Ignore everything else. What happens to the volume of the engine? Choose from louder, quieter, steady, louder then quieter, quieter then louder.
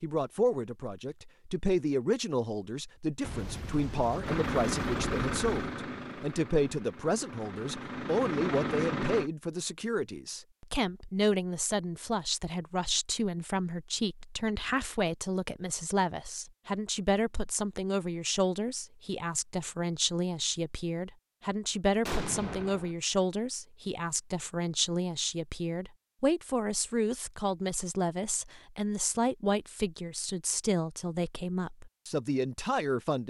quieter then louder.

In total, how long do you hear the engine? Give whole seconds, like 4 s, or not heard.
5 s.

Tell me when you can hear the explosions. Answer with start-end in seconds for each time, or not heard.
3.2-5.8, 22.1-22.9.